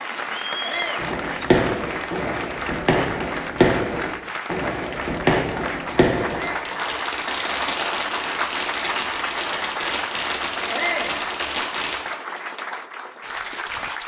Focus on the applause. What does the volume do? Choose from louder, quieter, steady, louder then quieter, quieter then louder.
steady.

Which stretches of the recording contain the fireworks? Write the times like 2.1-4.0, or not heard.
0.9-12.0.